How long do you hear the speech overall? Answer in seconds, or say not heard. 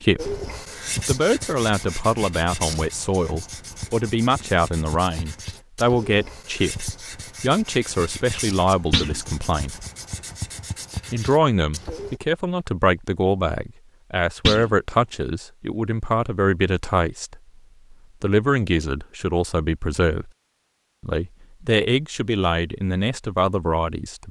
22 s.